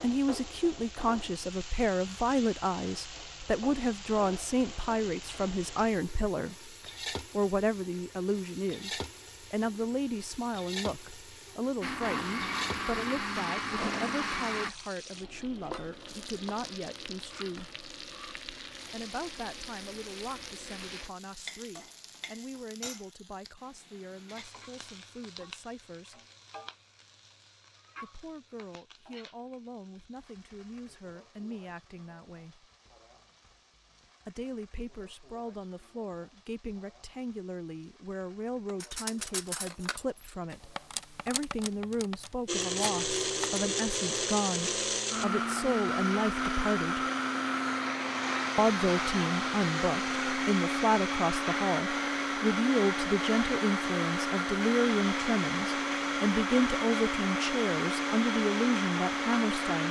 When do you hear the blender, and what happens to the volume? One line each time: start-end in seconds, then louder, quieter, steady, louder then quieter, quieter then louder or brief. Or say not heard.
11.8-14.7 brief
42.5-59.8 steady.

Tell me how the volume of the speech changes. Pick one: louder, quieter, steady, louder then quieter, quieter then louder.
quieter then louder.